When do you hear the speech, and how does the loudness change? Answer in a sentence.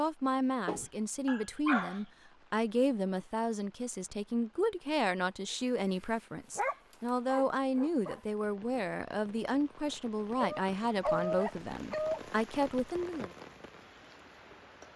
The speech can be heard from 0.0 to 13.3 s, at a steady volume.